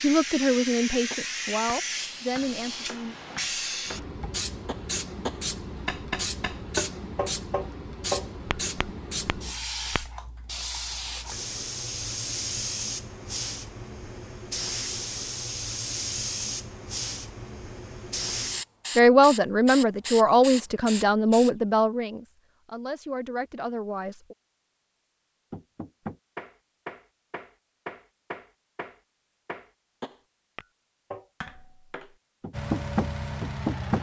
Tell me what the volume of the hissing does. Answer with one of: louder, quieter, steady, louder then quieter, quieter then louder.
steady.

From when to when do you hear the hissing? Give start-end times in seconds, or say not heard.
0.0-21.5.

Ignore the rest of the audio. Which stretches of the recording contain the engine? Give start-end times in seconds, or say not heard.
32.5-33.9.